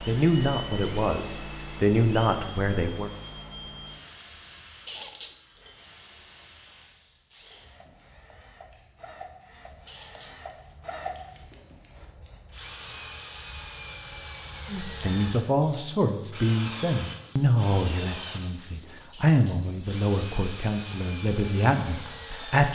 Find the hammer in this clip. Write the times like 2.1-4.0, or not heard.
not heard.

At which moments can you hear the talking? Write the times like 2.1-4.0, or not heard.
0.1-3.1, 14.7-22.7.